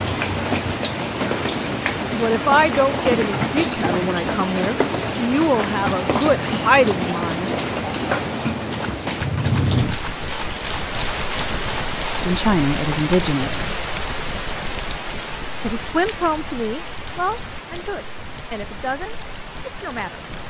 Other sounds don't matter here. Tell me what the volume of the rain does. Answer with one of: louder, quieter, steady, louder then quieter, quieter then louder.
quieter.